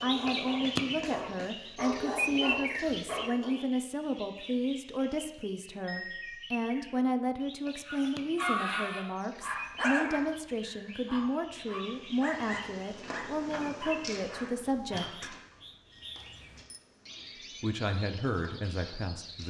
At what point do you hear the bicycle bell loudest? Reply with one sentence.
The loudest moment of the bicycle bell is at 6 seconds.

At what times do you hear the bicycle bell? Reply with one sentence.
The bicycle bell can be heard from 5.8 to 6.5 s and from 15.9 to 16.8 s.